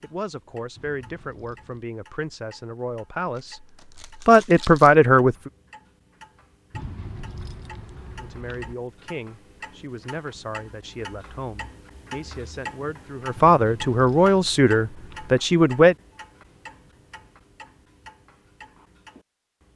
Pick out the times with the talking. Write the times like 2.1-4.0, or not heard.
0.0-3.6, 4.2-5.5, 8.2-15.9.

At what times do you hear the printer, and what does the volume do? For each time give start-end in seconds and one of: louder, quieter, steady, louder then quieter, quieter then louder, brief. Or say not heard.
not heard.